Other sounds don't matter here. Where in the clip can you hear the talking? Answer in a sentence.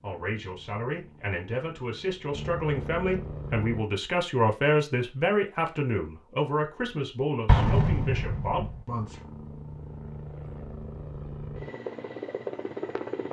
You can hear the talking from 0.0 to 9.2 s.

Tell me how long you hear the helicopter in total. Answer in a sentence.
You can hear the helicopter for 8 seconds altogether.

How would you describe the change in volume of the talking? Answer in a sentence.
The volume of the talking goes up, then down.